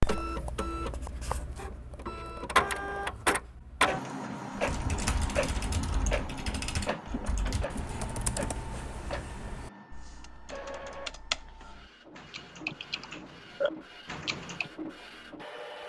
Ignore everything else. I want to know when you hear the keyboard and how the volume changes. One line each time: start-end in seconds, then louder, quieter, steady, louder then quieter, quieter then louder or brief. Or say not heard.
4.5-14.7 quieter then louder.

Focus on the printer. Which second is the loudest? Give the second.
3 s.